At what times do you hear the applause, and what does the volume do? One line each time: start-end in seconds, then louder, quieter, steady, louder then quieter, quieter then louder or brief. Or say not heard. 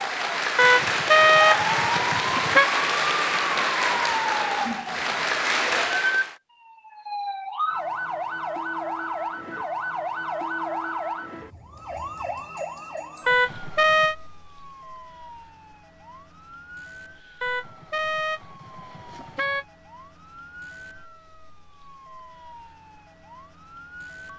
0.0-6.3 steady.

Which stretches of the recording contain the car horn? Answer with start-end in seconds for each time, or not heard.
0.6-2.6, 13.2-14.2, 17.4-19.6.